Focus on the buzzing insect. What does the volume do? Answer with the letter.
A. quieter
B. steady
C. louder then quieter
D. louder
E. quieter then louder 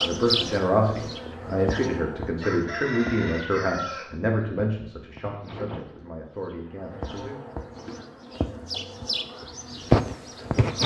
E.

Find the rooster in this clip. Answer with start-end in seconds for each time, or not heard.
2.4-4.2.